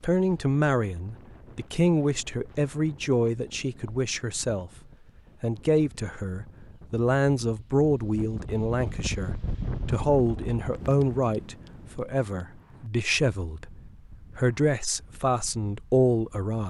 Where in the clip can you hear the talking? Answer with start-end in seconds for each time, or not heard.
0.0-4.7, 5.4-16.6.